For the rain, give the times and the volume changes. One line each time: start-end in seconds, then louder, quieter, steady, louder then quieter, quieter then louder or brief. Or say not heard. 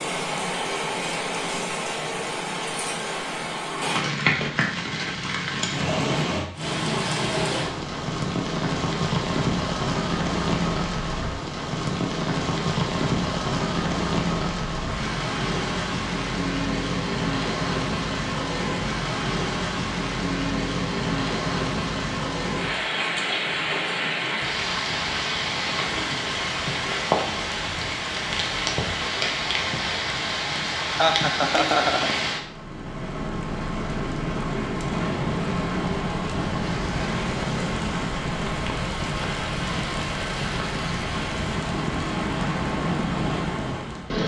0.0-44.2 steady.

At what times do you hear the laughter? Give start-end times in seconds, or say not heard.
30.9-32.1.